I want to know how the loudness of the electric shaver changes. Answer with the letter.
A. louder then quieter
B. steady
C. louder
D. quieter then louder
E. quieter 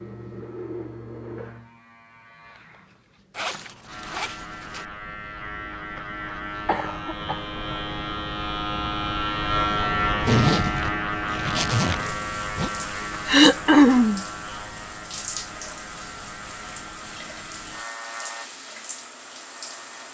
A.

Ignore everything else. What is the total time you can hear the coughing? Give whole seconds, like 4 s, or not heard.
2 s.